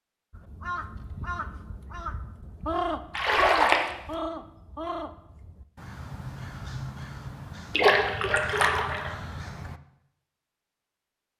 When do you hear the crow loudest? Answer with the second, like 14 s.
3 s.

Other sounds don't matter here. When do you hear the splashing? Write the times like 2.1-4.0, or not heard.
3.1-3.9, 7.7-9.2.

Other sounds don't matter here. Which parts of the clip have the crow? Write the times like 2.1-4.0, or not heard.
0.3-9.8.